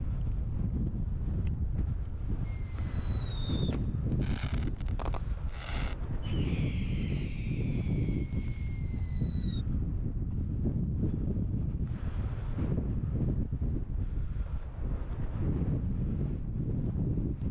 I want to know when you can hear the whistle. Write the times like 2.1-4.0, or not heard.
not heard.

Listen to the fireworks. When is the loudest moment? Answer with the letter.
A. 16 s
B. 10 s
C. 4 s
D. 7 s
D.